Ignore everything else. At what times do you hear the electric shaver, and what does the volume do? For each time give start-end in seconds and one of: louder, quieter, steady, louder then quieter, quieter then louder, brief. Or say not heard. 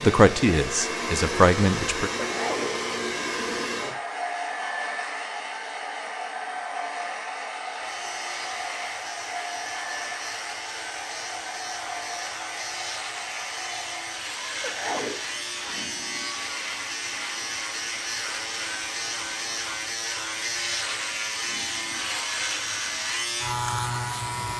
7.7-24.5 louder.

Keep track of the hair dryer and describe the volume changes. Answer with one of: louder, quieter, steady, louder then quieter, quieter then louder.
quieter.